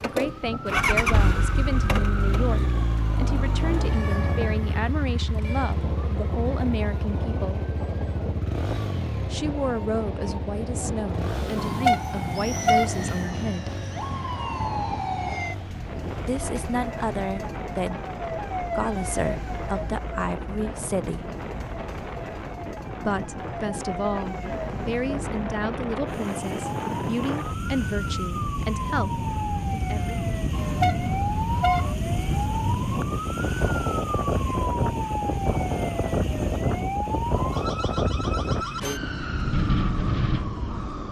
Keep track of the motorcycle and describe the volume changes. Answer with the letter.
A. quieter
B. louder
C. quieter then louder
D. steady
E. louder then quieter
A.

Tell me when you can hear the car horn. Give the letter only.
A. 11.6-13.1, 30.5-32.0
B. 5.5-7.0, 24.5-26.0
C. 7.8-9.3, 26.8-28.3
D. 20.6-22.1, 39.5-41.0
A.